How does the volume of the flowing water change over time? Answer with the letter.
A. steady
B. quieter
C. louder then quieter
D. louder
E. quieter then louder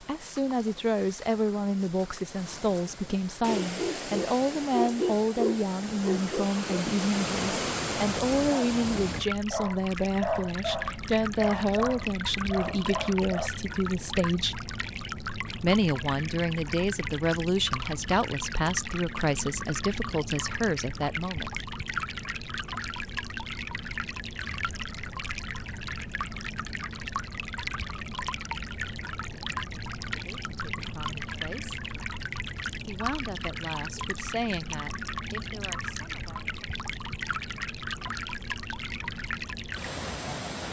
A.